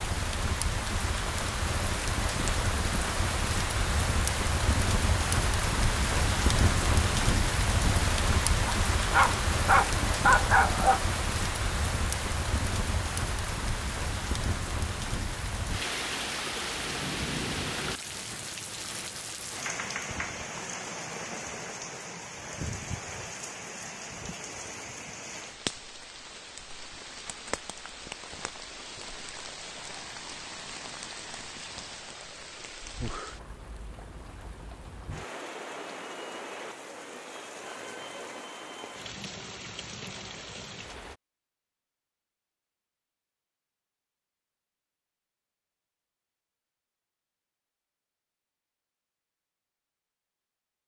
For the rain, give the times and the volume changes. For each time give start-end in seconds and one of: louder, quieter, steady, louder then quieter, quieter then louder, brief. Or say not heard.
0.0-41.2 quieter.